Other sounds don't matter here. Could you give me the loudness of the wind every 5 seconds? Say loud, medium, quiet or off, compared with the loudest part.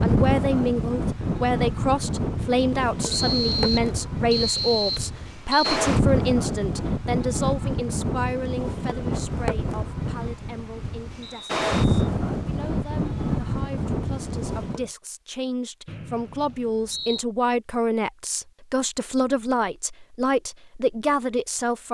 loud, loud, loud, off, off.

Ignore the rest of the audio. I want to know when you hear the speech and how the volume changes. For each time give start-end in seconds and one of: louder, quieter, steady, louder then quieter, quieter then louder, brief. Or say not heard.
0.0-21.9 quieter then louder.